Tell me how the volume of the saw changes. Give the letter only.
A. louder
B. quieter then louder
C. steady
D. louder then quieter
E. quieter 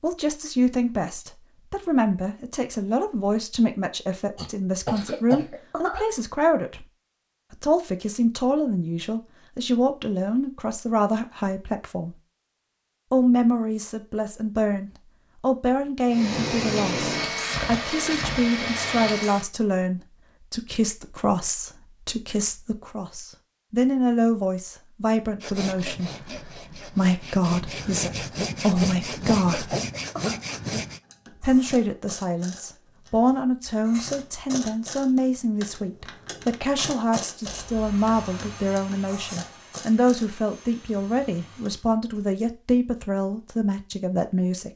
A.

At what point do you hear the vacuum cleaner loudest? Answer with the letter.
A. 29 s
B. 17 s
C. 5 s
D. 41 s
B.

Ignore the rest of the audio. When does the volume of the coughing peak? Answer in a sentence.
The volume of the coughing peaks at 5 seconds.